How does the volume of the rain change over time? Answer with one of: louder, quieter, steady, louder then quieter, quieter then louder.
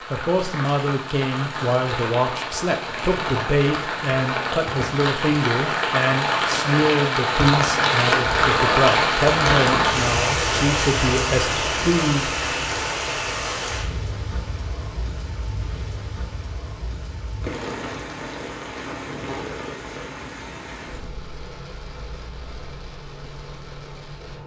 louder then quieter.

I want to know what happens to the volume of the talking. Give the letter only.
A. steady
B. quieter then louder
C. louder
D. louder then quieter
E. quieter
A.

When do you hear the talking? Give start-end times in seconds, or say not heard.
0.1-12.3.